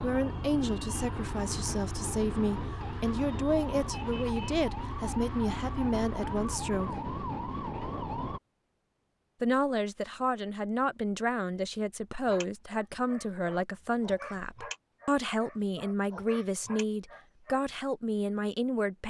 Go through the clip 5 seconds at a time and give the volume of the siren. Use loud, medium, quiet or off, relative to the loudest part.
loud, loud, off, off.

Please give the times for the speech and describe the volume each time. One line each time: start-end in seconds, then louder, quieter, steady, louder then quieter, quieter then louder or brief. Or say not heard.
0.0-7.1 steady
9.4-19.0 steady.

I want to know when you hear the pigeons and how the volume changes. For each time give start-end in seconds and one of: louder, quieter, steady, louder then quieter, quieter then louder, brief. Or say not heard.
not heard.